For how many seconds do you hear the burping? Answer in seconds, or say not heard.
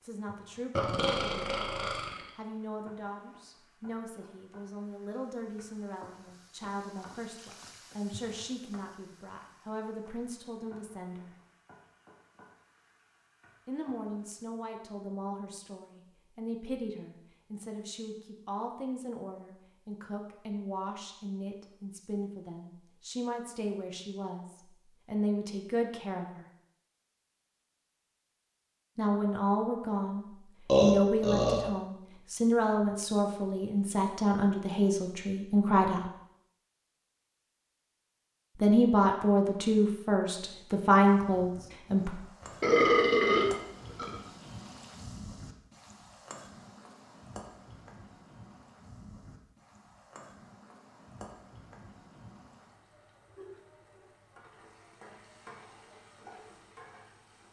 4 s.